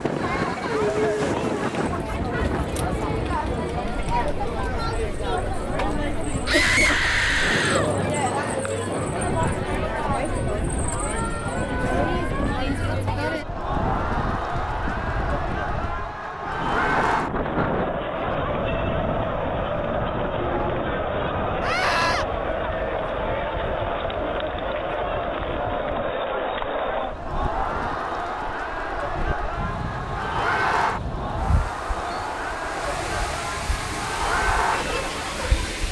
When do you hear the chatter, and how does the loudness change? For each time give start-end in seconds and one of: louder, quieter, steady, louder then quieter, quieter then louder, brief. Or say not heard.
0.0-35.8 steady.